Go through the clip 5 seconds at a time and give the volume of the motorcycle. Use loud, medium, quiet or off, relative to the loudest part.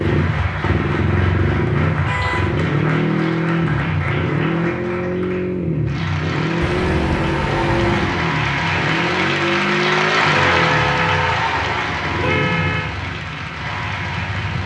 loud, loud, medium.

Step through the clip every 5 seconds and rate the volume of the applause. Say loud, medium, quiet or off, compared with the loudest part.
medium, loud, loud.